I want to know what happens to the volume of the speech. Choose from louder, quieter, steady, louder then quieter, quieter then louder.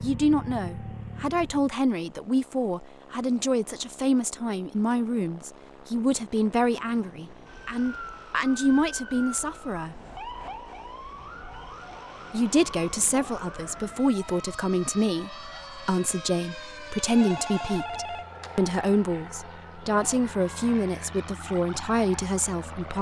steady.